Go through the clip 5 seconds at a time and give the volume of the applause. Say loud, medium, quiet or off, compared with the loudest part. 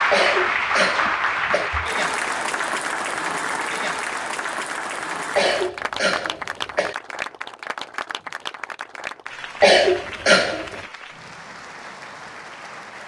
loud, medium, quiet.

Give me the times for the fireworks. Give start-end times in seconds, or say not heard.
not heard.